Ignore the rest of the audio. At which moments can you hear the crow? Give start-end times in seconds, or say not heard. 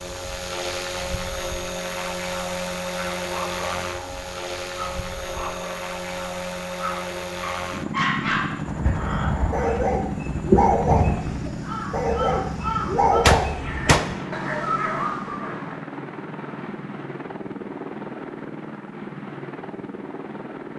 8.7-14.6.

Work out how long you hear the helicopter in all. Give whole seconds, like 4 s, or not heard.
21 s.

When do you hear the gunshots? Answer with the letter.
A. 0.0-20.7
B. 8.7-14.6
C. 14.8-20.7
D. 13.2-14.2
D.